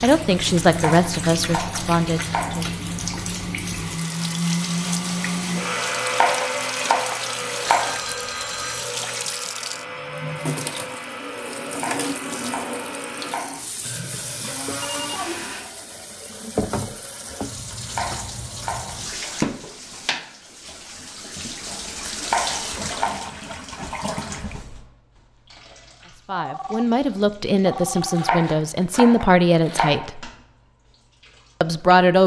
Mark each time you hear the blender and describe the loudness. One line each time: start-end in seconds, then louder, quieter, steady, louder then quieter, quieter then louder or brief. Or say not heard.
0.0-15.7 louder then quieter.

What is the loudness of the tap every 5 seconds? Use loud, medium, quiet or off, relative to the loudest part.
loud, loud, loud, loud, loud, quiet, quiet.